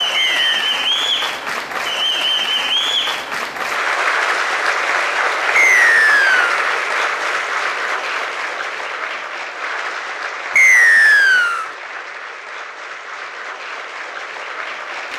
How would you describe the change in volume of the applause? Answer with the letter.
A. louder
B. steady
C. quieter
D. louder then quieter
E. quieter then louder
C.